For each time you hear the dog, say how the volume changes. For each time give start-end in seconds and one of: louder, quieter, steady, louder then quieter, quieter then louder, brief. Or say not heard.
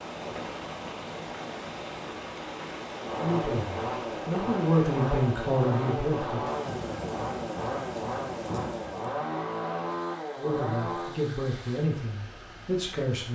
not heard.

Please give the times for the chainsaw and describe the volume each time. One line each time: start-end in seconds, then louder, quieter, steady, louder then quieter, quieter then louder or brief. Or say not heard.
2.9-11.2 steady.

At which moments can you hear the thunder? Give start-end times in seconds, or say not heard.
6.5-9.2.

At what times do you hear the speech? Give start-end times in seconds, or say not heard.
3.1-6.5, 10.3-13.2.